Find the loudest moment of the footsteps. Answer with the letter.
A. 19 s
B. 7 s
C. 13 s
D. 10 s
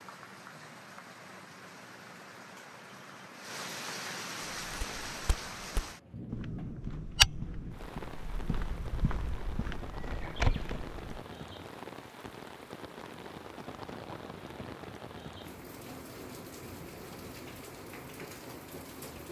B.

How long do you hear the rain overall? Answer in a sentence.
You can hear the rain for 19 seconds altogether.